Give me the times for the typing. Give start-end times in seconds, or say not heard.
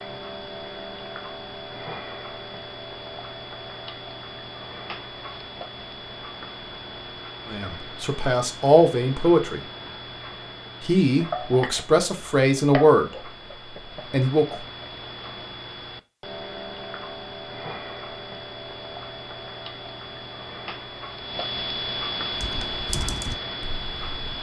22.3-24.3.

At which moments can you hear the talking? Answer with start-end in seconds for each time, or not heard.
7.5-9.6, 10.8-13.3, 14.1-14.6.